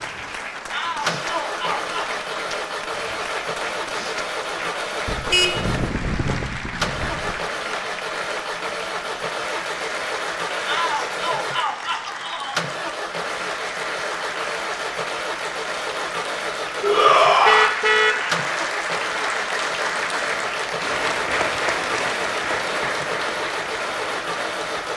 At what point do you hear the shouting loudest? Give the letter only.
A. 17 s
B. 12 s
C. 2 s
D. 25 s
A.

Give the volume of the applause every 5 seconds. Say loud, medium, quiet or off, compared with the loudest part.
medium, medium, medium, loud, loud.